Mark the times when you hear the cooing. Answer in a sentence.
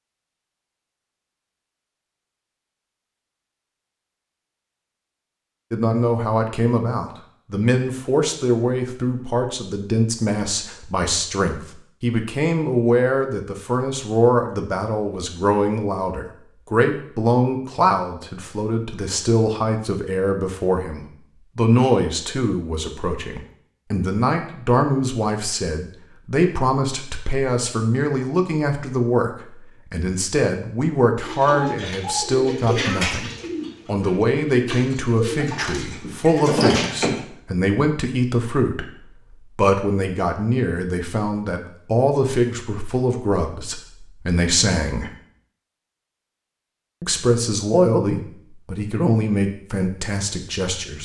You can hear the cooing from 31.2 to 37.2 s.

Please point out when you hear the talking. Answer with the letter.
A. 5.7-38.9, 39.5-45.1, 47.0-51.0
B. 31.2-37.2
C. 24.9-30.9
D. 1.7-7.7
A.